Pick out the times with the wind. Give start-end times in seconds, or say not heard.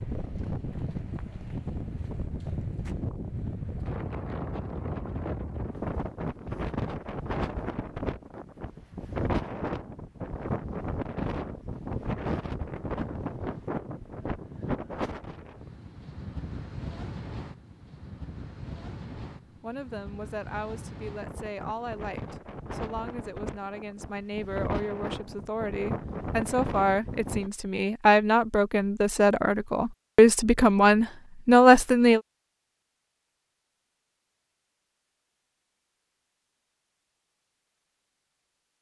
0.0-27.5.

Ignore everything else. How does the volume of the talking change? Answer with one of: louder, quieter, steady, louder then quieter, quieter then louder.
louder.